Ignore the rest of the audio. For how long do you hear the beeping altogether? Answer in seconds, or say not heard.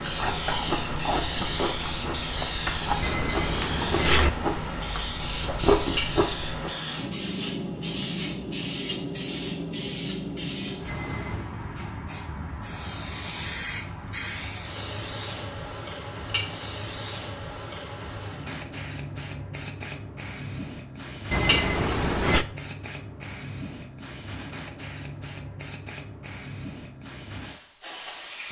3 s.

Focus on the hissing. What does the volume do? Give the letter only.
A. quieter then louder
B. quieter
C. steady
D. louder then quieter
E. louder
B.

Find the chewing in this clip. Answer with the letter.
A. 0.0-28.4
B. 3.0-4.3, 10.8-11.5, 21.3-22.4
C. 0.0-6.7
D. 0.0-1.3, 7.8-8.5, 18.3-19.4
C.